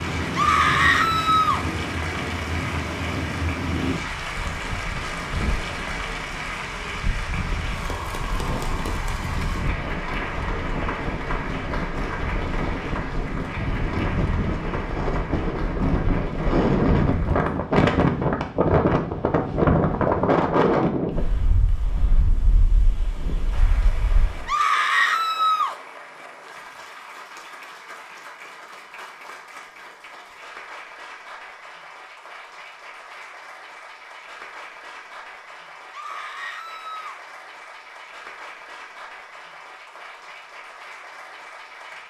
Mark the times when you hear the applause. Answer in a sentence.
The applause can be heard from 0.0 to 17.5 s and from 23.5 to 42.0 s.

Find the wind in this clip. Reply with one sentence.
The wind can be heard from 0.0 to 24.5 s.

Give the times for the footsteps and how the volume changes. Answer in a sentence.
The footsteps can't be heard in this clip.